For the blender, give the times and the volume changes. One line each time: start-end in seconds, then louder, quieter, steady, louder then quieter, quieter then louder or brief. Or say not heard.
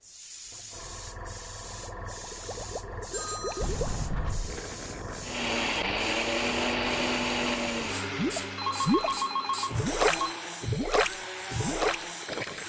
5.2-12.6 quieter.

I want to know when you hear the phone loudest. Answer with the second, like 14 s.
9 s.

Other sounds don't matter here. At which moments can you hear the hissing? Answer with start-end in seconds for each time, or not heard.
0.0-12.6.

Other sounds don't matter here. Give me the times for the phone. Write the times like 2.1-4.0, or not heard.
2.5-3.8, 8.6-10.3.